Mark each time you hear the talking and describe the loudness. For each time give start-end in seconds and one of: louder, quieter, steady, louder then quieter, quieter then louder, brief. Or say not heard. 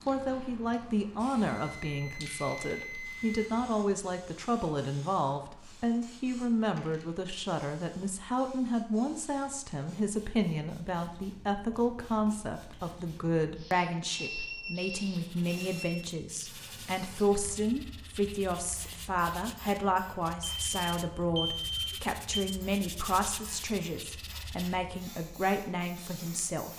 0.1-26.7 steady.